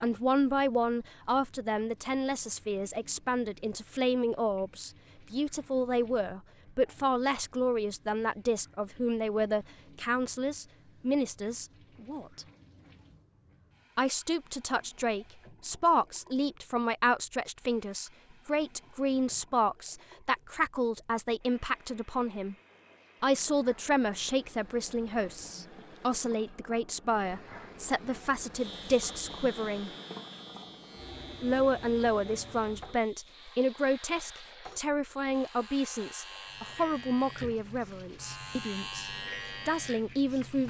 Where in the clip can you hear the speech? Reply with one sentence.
You can hear the speech from 0.0 to 12.4 s, from 13.9 to 22.6 s, from 23.2 to 29.9 s and from 31.4 to 40.6 s.